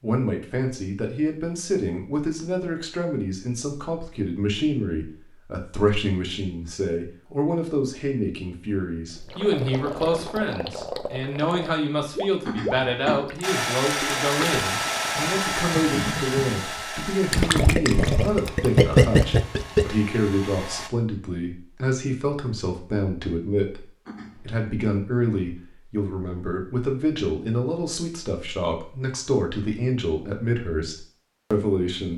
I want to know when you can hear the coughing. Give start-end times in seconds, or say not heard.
12.4-13.2, 24.1-24.6.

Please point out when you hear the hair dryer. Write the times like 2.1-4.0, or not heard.
13.4-20.9.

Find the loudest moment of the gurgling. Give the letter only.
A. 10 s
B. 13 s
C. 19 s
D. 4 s
C.